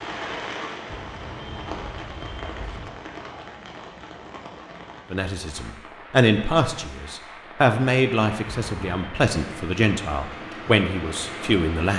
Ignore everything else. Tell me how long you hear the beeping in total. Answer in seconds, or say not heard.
3 s.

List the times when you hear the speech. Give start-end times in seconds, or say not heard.
5.1-11.9.